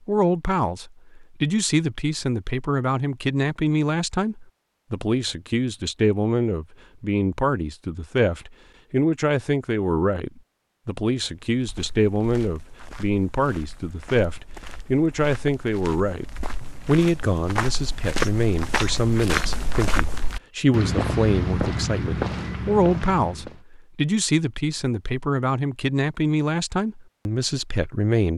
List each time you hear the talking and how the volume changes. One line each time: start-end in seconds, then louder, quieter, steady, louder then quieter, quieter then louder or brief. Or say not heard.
0.1-16.2 steady
16.9-28.3 steady.